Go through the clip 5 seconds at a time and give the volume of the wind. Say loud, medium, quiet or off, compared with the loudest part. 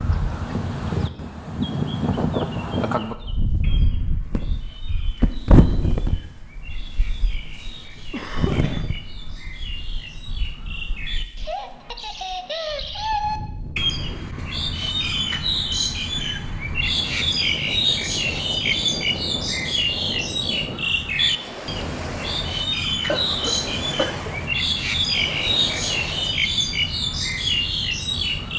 loud, loud, quiet, medium, medium, medium.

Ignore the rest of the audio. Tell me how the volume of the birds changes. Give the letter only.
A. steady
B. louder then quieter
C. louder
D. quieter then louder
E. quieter
C.